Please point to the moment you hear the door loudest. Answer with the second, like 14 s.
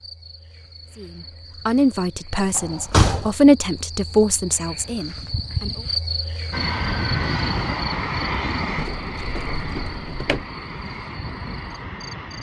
3 s.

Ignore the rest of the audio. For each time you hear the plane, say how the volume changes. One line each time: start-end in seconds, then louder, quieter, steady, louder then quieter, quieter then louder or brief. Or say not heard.
6.5-12.3 quieter.